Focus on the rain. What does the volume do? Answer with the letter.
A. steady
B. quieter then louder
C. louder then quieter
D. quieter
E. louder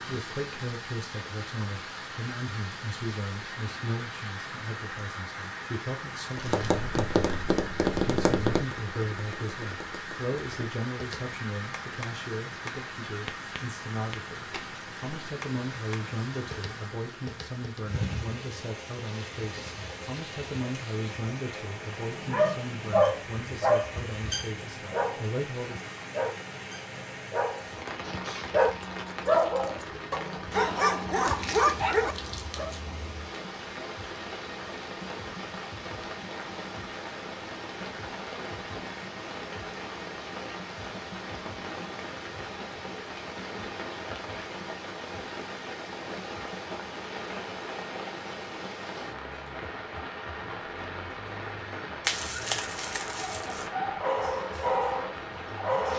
A.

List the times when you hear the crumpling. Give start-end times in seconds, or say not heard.
6.2-6.8, 31.2-32.8, 52.0-53.7.